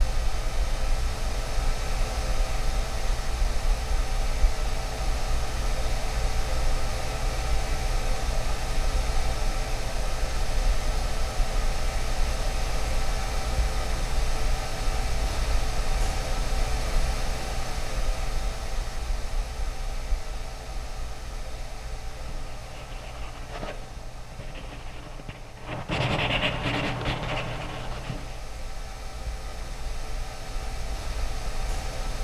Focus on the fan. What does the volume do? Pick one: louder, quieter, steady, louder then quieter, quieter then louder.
quieter.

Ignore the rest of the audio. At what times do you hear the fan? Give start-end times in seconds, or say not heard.
0.0-32.2.